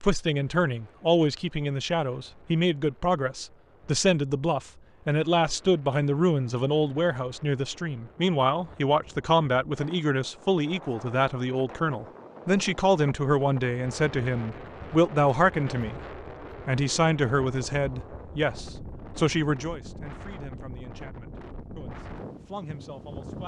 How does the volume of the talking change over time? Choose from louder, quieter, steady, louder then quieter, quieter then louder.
quieter.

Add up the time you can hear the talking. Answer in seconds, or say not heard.
23 s.